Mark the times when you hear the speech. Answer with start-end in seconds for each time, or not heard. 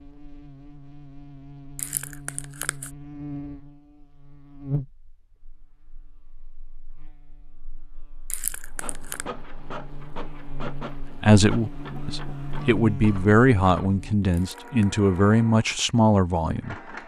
11.2-16.9.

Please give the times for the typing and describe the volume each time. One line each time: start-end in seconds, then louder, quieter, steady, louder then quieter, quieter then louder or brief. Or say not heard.
not heard.